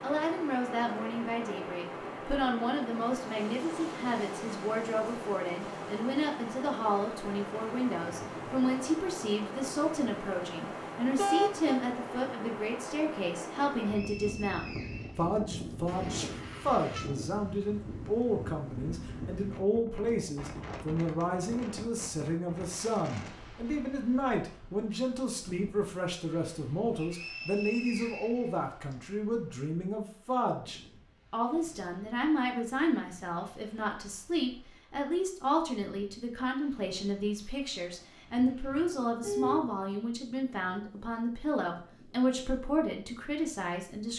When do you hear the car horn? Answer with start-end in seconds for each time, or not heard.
11.2-11.8, 15.8-17.1, 38.5-39.8.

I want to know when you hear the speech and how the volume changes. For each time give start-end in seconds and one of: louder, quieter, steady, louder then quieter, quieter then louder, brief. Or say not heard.
0.0-44.1 steady.